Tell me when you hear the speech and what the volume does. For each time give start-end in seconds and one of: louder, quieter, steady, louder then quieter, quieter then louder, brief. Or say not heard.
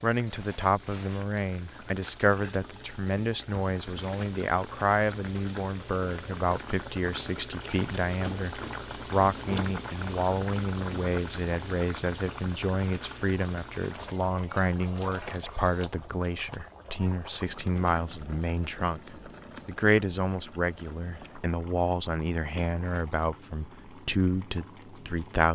0.0-25.5 steady.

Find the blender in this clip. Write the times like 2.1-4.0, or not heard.
not heard.